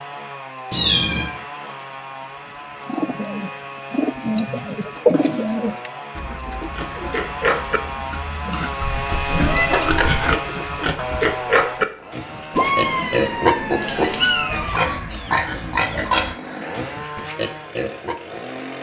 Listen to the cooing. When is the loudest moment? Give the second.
5 s.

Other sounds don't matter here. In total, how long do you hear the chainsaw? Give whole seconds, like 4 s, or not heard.
19 s.